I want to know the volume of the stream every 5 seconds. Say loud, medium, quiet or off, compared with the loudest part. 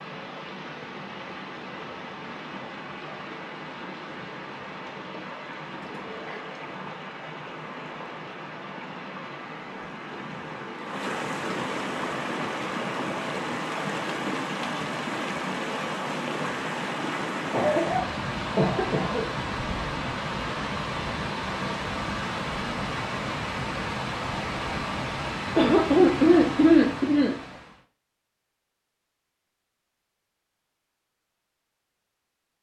medium, medium, loud, loud, loud, loud, off.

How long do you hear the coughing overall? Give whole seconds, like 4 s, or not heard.
4 s.